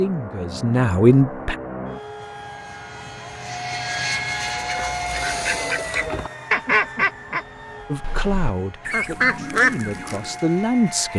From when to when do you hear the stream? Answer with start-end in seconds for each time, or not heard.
not heard.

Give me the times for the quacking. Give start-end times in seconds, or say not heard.
4.5-10.4.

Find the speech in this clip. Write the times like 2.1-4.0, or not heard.
0.0-1.6, 7.9-11.1.